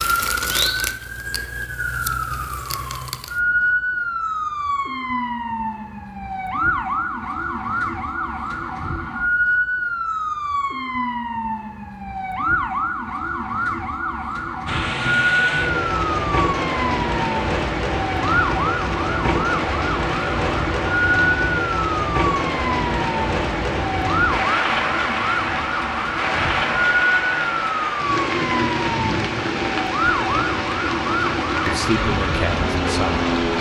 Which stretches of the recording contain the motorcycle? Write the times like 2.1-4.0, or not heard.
not heard.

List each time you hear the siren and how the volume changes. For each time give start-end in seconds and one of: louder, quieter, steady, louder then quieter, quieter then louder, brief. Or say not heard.
0.0-33.5 steady.